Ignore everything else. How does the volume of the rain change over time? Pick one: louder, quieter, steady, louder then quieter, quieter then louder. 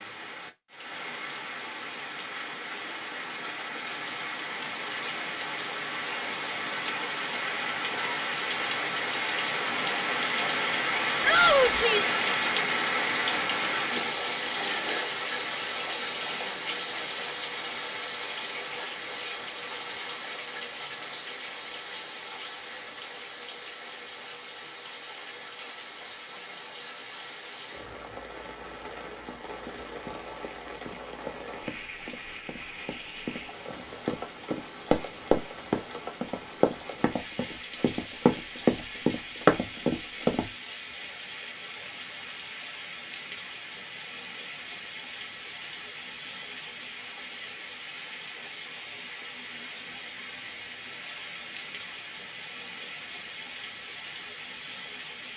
quieter.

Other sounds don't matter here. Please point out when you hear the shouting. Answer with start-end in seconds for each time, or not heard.
11.2-12.2.